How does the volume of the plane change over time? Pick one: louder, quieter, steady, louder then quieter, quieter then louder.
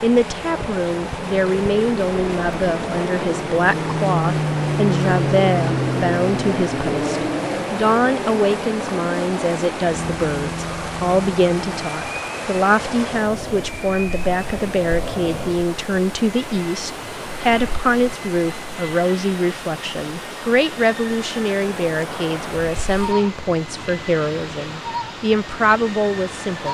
quieter.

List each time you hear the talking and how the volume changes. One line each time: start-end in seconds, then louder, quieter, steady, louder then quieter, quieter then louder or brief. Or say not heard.
0.0-26.7 steady.